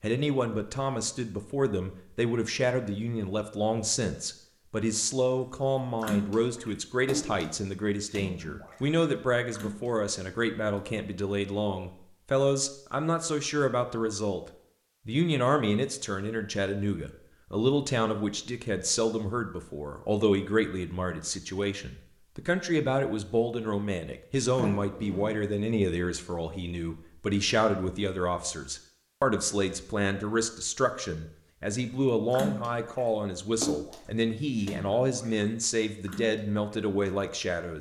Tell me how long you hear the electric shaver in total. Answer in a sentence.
You can't hear the electric shaver here.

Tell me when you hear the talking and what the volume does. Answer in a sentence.
The talking can be heard from 0.0 to 14.4 s, at a steady volume; and from 15.1 to 37.7 s, at a steady volume.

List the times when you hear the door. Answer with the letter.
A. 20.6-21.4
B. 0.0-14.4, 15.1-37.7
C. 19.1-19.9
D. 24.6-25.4
D.